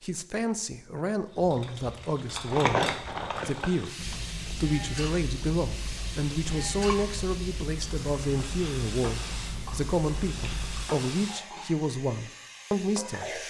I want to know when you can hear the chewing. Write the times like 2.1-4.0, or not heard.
1.4-10.9.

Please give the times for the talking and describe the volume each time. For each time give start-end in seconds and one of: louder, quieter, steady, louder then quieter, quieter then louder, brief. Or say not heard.
0.0-13.4 steady.